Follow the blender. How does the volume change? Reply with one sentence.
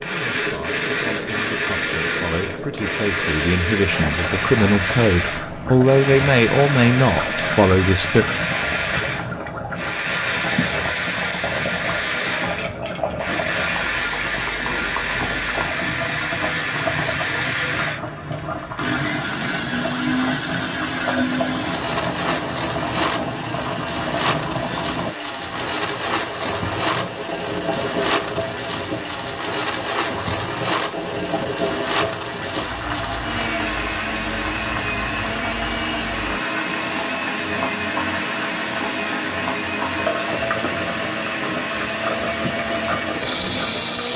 The volume of the blender stays about the same.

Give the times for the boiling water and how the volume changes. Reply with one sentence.
You can hear the boiling water from 0.0 to 44.1 s, at a steady volume.